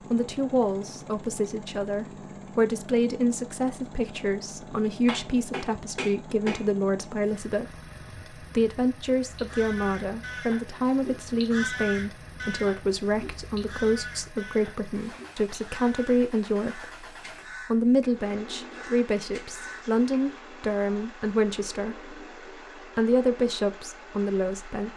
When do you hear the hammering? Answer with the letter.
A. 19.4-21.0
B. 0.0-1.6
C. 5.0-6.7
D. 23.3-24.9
C.